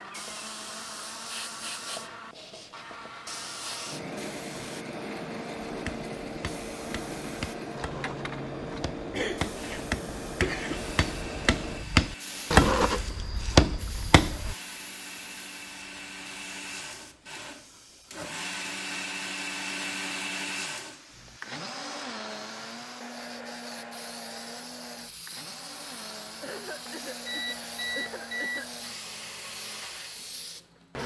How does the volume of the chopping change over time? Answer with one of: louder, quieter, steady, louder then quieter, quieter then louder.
louder.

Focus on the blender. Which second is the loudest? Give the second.
20 s.